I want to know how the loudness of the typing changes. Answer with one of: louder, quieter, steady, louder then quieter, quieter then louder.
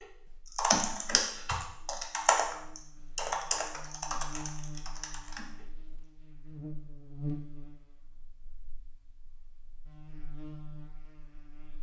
quieter.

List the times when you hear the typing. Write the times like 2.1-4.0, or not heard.
0.0-5.7.